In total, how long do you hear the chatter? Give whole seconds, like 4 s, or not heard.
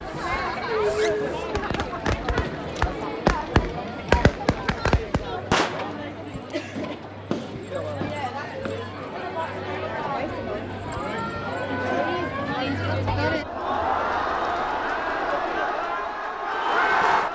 17 s.